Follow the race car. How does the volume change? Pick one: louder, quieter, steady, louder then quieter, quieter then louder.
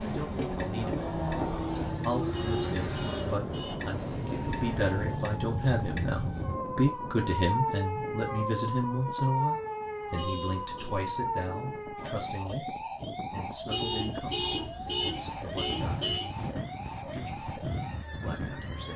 quieter.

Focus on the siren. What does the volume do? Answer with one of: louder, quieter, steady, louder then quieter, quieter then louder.
louder then quieter.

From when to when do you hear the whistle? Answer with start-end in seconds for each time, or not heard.
not heard.